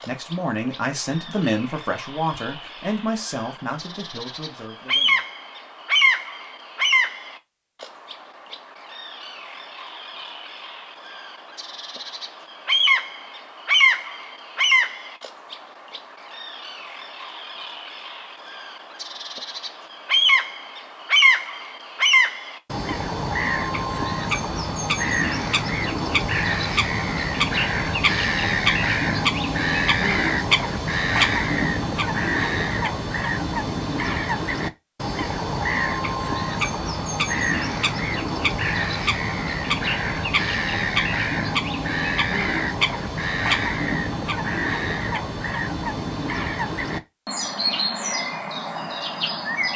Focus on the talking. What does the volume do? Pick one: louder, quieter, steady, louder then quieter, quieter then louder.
quieter.